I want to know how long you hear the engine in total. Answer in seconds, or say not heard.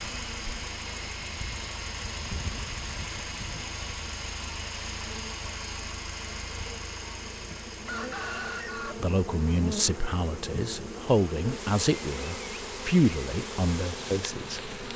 15 s.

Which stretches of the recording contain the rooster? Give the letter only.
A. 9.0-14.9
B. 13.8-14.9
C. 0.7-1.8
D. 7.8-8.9
D.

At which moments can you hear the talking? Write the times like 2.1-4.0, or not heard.
9.0-14.9.